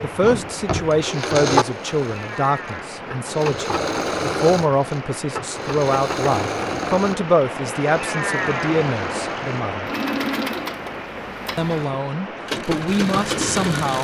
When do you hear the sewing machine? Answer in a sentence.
You can hear the sewing machine from 0.0 to 14.0 s.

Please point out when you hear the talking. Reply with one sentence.
The talking can be heard from 0.0 to 9.9 s and from 11.6 to 14.0 s.